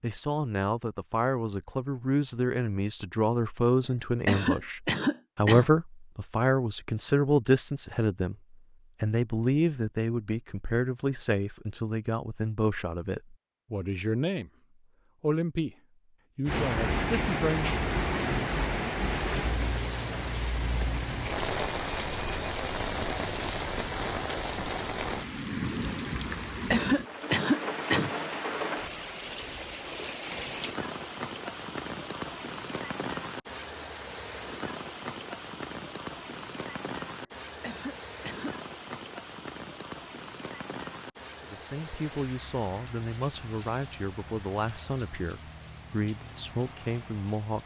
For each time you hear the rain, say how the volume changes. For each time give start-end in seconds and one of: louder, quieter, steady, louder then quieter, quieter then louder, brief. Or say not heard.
16.4-47.6 quieter.